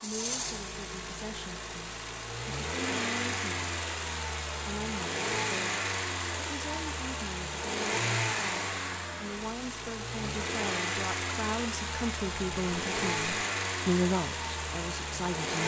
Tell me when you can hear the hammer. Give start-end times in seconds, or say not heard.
not heard.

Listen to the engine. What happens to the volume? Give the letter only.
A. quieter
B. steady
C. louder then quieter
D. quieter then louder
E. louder
B.